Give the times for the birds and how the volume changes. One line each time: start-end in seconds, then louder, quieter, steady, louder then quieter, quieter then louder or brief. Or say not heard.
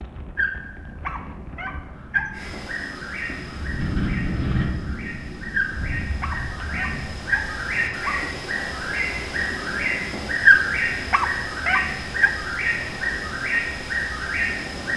2.3-14.9 louder.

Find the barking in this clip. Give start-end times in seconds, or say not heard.
0.3-2.4, 5.5-8.2, 10.4-12.3.